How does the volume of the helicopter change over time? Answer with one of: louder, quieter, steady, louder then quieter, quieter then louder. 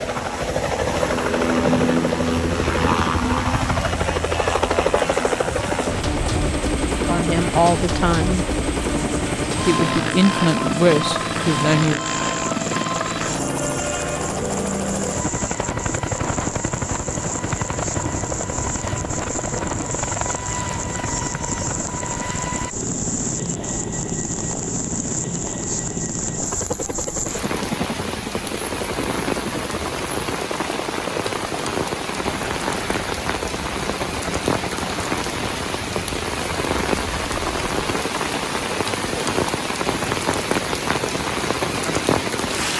quieter.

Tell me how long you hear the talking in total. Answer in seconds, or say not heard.
4 s.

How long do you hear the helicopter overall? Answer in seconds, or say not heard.
43 s.